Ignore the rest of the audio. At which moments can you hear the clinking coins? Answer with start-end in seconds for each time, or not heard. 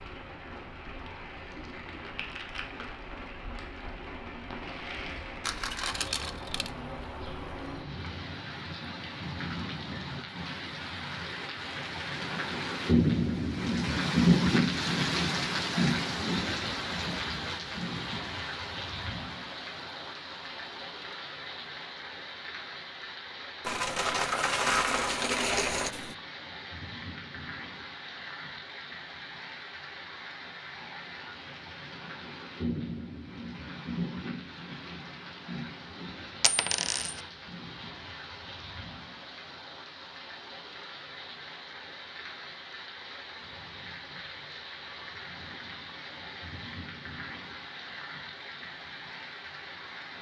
5.4-7.3, 23.6-26.1, 36.4-37.1.